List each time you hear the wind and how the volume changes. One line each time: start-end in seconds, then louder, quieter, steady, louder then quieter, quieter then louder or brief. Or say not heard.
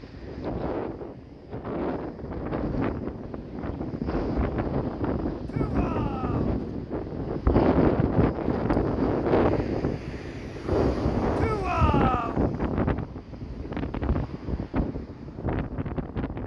0.0-16.4 louder then quieter.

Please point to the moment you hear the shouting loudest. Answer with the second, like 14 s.
12 s.